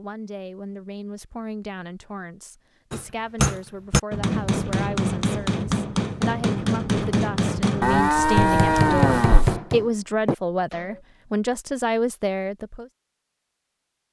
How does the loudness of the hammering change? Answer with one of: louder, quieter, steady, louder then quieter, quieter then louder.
steady.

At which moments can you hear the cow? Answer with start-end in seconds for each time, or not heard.
7.8-9.6.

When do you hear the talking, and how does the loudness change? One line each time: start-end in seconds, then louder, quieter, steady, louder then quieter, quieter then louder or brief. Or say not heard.
0.0-12.9 louder.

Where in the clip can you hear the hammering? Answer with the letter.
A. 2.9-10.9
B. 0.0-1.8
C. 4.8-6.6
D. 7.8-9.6
A.